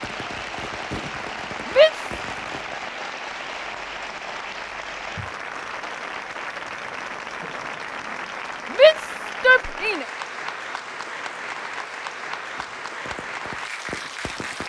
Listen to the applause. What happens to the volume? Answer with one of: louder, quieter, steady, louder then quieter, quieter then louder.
steady.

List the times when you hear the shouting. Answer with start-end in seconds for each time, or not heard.
1.6-2.1, 8.7-10.1.